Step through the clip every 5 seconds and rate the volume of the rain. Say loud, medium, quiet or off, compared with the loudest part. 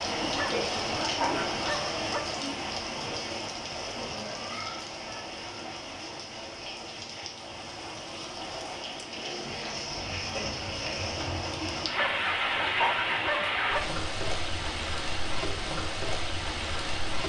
loud, medium, loud, loud.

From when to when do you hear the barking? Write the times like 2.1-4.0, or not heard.
0.3-2.2, 11.9-13.8.